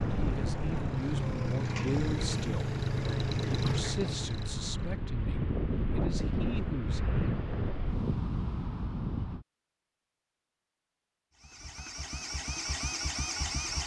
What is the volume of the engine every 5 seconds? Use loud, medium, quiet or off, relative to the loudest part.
loud, off, loud.